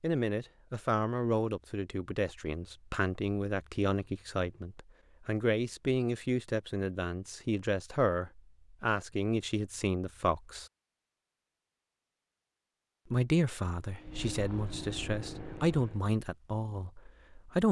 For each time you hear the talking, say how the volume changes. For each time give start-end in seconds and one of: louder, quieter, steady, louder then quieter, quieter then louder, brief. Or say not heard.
0.0-10.7 steady
13.1-17.6 louder then quieter.